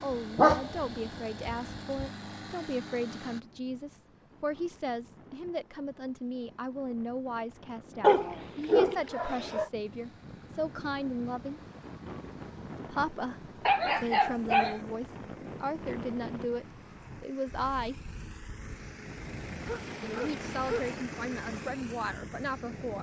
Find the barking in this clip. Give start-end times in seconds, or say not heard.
0.3-0.8, 1.4-2.0, 8.0-9.7, 13.7-14.8, 19.6-20.9.